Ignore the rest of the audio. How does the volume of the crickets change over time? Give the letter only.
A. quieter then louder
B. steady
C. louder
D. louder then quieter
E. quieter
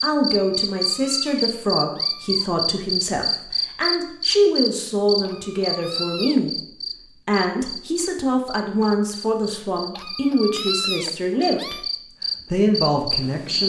A.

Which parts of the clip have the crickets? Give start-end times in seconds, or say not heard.
0.0-13.6.